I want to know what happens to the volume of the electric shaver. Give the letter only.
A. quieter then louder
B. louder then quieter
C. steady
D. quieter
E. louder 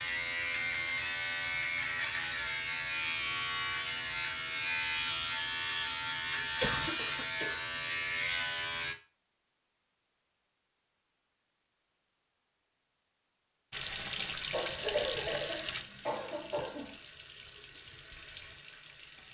C.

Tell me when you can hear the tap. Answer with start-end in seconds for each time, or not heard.
13.7-19.2.